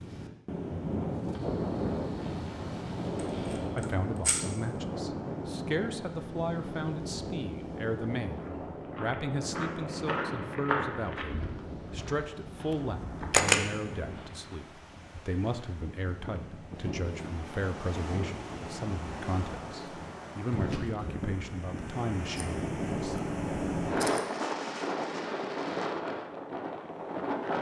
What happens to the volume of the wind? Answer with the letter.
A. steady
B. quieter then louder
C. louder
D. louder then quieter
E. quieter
B.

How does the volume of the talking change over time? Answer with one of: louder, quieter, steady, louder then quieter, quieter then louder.
steady.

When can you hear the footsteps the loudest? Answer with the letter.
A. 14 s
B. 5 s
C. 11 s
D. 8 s
C.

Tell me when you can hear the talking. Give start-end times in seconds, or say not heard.
3.8-23.2.